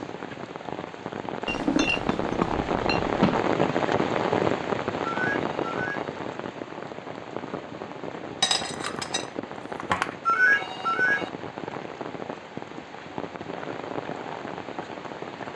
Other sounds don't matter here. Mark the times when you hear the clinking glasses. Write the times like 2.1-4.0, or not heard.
1.4-3.5, 8.4-10.2.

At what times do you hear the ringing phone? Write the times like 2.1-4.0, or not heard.
5.0-6.1, 10.2-11.3.